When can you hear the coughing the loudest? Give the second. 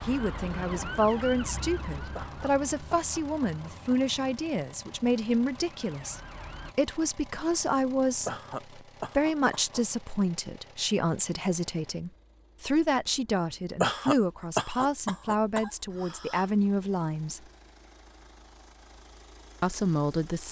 14 s.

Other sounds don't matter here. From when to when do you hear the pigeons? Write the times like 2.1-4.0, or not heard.
not heard.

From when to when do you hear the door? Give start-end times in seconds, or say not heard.
not heard.